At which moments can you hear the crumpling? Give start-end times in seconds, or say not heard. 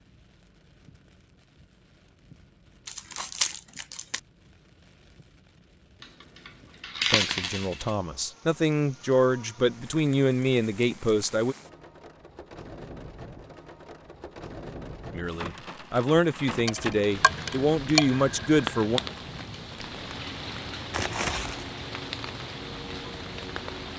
2.9-4.2, 20.9-21.8.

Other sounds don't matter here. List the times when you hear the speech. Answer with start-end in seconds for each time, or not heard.
7.1-11.6, 15.2-19.0.